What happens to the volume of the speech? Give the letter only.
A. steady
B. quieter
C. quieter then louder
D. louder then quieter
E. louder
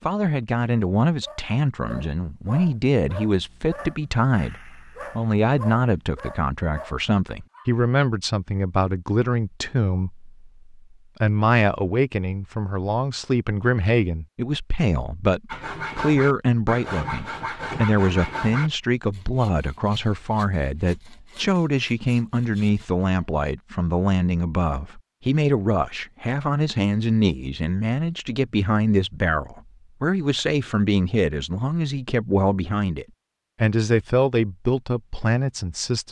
A.